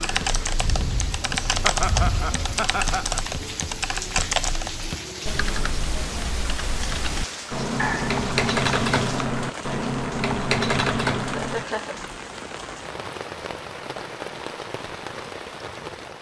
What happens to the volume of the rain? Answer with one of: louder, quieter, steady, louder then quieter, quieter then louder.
steady.